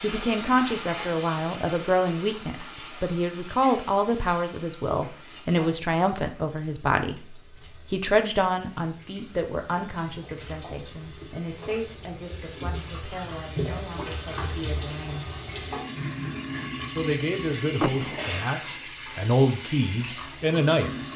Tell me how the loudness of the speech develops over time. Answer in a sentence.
The loudness of the speech goes down, then up.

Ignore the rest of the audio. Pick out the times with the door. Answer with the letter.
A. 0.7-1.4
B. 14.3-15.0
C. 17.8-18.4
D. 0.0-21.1
C.